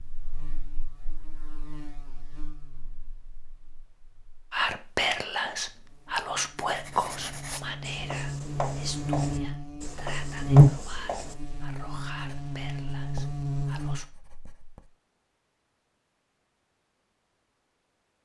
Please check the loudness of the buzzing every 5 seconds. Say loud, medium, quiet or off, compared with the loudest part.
quiet, medium, loud, off.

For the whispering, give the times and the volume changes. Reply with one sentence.
The whispering can be heard from 4.5 to 14.1 s, getting quieter.